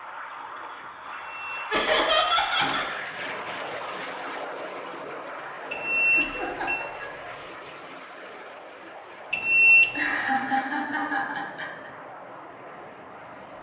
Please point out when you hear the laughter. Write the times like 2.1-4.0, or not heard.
1.7-2.9, 6.2-7.3, 9.9-11.9.